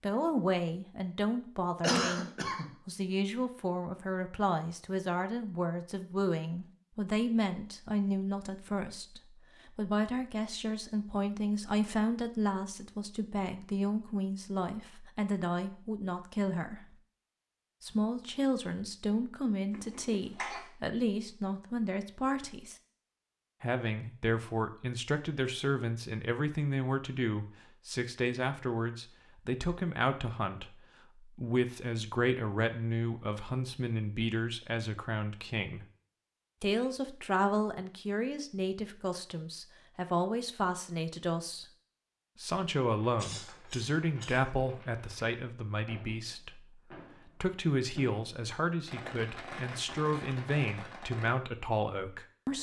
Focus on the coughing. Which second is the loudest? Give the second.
2 s.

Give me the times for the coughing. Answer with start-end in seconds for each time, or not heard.
1.8-2.7, 19.7-20.6, 43.1-44.5.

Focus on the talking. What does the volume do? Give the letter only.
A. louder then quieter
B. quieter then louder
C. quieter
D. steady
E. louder
D.